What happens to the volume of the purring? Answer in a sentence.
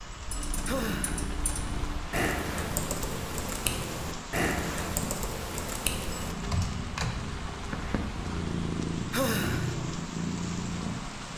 The loudness of the purring goes up.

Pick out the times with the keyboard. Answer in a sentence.
The keyboard can be heard from 0.2 to 8.4 s.